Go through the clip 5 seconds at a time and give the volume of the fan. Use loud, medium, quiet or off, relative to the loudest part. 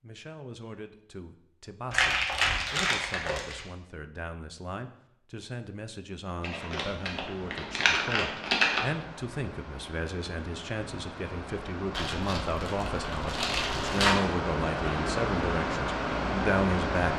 off, quiet, medium, loud.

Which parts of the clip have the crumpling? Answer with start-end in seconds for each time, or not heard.
1.9-3.6, 6.4-8.8, 11.9-14.2.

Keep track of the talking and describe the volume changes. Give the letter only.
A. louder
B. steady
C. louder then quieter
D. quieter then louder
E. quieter
A.